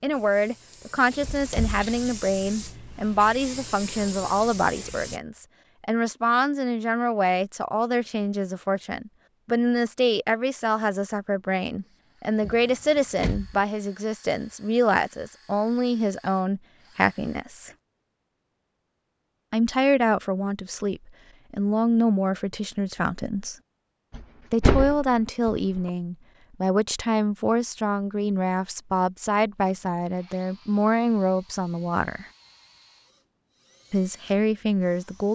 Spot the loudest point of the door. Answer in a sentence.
The volume of the door peaks at 25 seconds.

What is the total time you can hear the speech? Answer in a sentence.
The speech can be heard for 31 seconds in total.